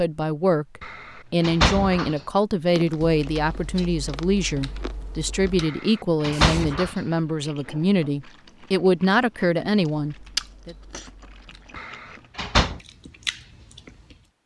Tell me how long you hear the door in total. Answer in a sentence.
You can hear the door for 4 seconds altogether.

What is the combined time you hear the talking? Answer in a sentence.
The talking can be heard for 11 seconds in total.